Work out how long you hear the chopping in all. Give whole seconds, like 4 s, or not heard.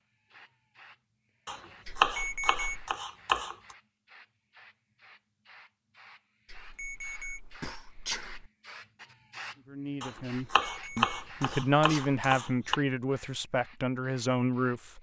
5 s.